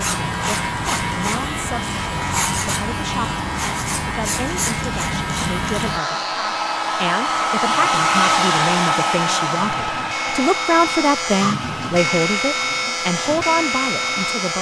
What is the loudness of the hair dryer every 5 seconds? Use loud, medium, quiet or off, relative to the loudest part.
medium, loud, medium.